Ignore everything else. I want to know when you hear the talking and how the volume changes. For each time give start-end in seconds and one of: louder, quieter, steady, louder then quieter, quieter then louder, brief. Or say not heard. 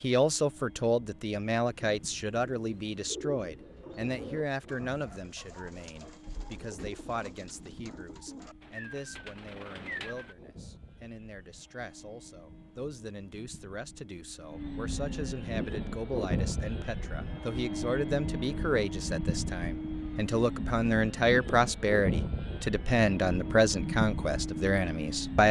0.0-25.4 quieter then louder.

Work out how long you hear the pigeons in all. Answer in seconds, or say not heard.
9 s.